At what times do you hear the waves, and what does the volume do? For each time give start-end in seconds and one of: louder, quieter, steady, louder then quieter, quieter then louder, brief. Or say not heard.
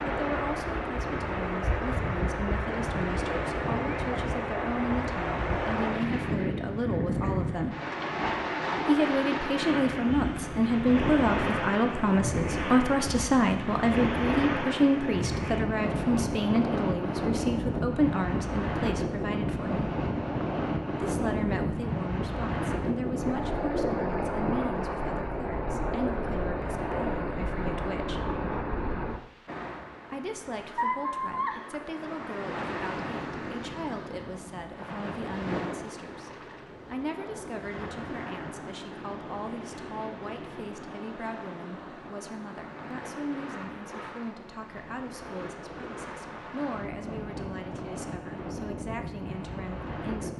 0.0-50.3 quieter.